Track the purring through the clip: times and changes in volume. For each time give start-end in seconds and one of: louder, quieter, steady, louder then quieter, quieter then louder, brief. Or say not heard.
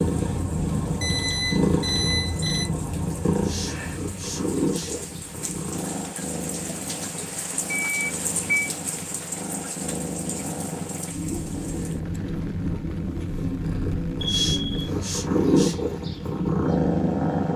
0.0-17.5 quieter then louder.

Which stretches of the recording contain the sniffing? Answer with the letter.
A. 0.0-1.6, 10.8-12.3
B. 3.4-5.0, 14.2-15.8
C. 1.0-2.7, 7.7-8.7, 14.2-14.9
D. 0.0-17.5
B.